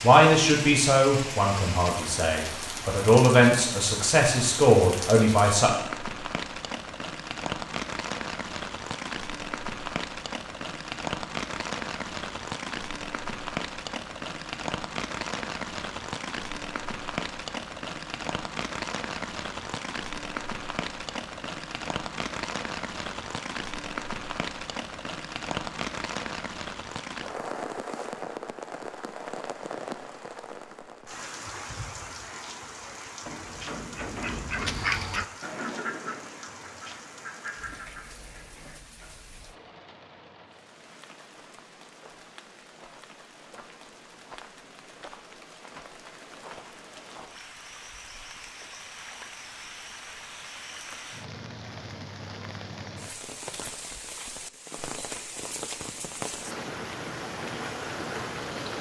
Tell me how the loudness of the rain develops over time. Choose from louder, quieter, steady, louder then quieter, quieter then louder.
quieter then louder.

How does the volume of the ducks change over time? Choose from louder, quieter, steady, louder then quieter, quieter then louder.
louder then quieter.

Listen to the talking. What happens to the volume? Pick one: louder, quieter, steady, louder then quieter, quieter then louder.
quieter then louder.